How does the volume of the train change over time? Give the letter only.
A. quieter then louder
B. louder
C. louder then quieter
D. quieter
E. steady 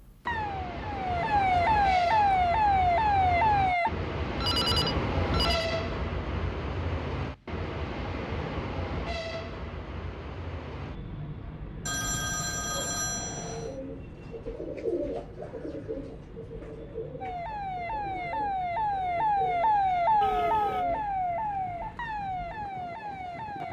D.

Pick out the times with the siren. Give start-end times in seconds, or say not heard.
0.2-3.9, 17.2-23.6.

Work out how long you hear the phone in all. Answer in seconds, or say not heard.
4 s.